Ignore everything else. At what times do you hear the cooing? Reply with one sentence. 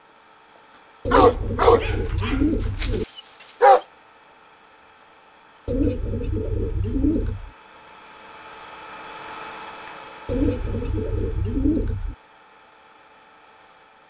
The cooing can be heard from 1.1 to 3.0 s, from 5.7 to 7.5 s and from 10.2 to 12.2 s.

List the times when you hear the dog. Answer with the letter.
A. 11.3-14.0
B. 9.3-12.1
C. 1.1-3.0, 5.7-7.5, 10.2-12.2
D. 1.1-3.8
D.